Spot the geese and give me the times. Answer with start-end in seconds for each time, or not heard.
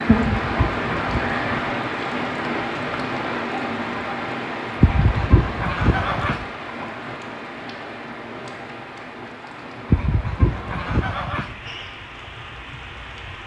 0.1-1.7, 4.8-6.5, 9.9-11.6.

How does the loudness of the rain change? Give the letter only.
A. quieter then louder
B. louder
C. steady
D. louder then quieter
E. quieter
E.